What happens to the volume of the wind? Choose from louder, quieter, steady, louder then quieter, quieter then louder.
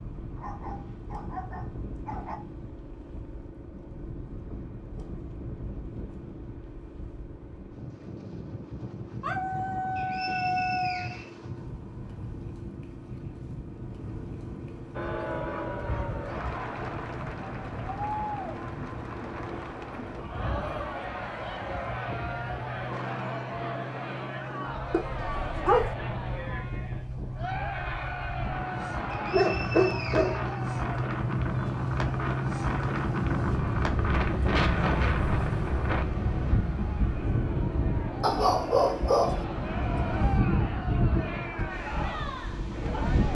louder.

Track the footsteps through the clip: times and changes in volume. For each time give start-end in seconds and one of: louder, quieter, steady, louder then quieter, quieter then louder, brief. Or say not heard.
not heard.